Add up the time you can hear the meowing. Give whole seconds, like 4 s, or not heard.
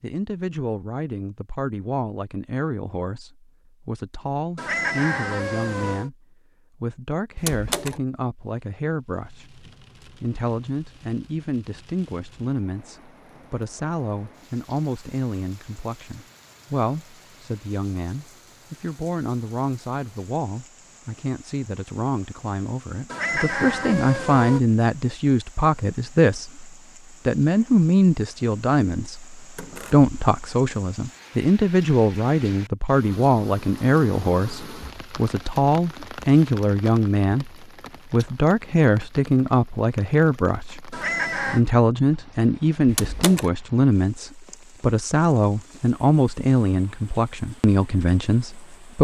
4 s.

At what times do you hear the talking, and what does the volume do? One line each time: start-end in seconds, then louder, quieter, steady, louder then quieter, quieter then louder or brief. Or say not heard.
0.0-48.9 louder.